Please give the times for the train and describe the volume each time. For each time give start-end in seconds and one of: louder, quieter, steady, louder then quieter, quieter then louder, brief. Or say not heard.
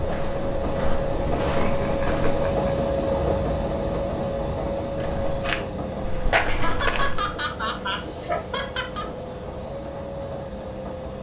0.0-11.1 quieter.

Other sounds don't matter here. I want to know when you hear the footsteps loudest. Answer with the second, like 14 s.
6 s.